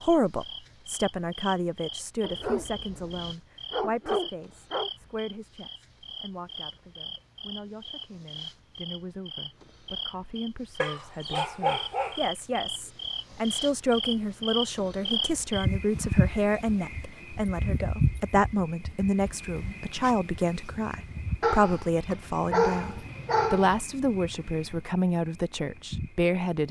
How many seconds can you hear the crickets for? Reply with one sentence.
You can hear the crickets for 26 seconds altogether.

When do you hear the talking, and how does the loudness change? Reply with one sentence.
You can hear the talking from 0.0 to 26.6 s, getting quieter then louder.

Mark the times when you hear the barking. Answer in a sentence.
You can hear the barking from 2.2 to 4.9 s, from 10.8 to 12.2 s and from 21.4 to 23.8 s.